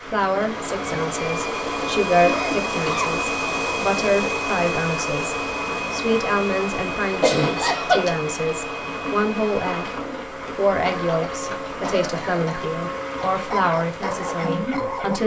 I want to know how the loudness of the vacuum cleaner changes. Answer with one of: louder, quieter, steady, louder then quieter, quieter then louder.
quieter.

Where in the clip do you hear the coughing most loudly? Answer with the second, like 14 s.
8 s.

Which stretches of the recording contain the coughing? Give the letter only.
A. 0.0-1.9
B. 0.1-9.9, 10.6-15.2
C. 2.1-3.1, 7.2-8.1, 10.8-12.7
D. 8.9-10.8
C.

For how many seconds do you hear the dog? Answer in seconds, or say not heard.
2 s.